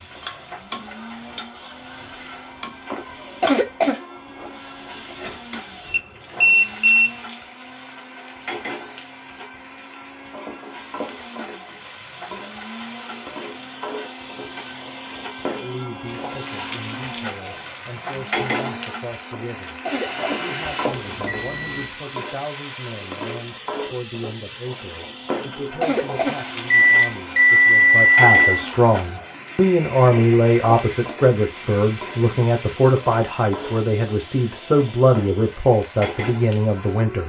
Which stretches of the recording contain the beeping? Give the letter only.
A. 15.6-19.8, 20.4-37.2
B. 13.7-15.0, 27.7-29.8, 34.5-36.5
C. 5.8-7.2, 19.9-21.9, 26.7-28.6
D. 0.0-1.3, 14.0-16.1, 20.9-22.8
C.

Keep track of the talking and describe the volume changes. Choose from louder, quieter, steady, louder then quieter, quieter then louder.
louder.